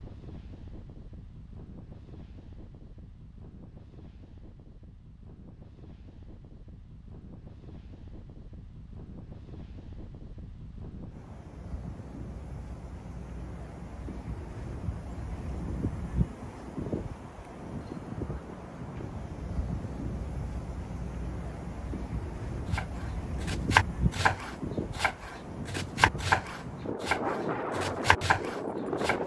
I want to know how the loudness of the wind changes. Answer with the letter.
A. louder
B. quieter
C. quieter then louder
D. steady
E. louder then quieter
A.